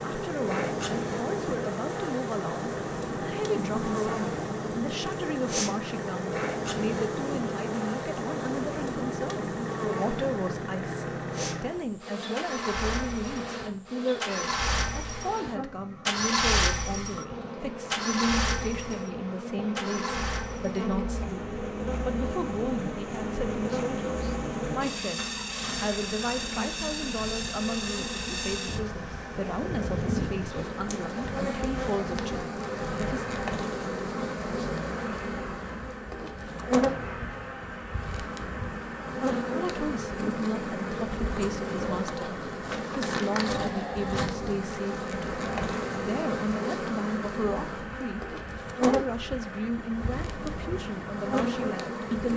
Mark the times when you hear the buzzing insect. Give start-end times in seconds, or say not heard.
0.0-52.3.